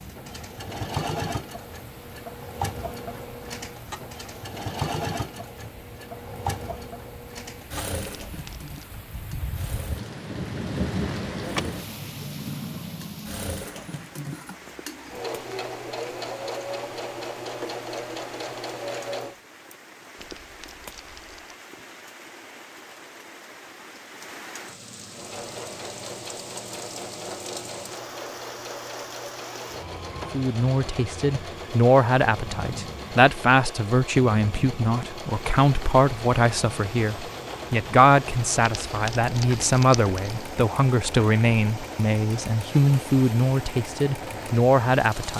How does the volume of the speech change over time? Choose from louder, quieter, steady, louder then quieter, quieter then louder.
steady.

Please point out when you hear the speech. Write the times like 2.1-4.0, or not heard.
30.3-45.3.